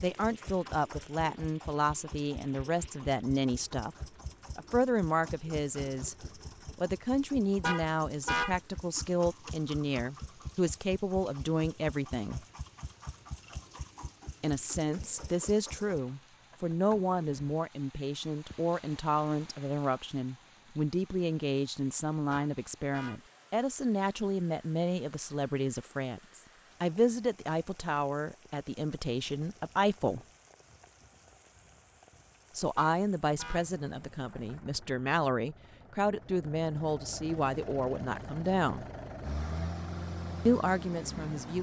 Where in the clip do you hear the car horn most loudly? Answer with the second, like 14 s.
8 s.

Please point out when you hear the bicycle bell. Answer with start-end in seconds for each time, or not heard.
not heard.